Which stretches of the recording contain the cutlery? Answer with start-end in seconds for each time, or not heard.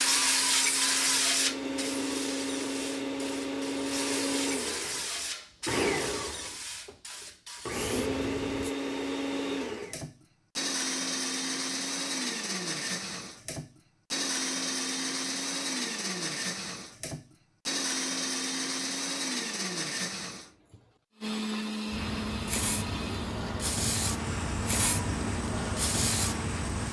not heard.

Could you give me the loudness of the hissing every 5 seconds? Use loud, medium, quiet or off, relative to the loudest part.
loud, medium, off, off, loud, loud.